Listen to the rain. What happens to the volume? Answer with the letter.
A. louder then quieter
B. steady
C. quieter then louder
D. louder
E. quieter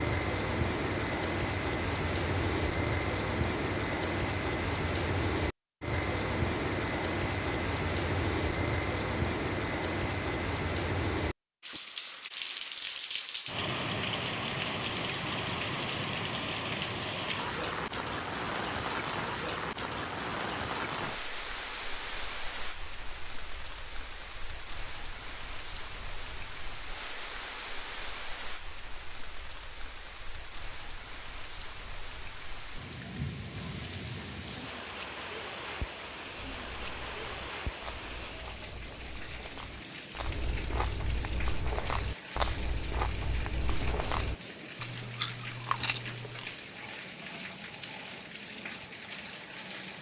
E.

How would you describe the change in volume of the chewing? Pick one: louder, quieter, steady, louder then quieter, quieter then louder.
louder.